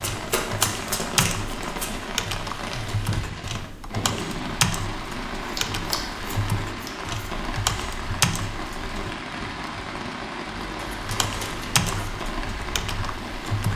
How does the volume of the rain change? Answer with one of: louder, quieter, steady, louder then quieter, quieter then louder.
steady.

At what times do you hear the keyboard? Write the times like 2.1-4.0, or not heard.
0.0-9.2, 11.1-13.7.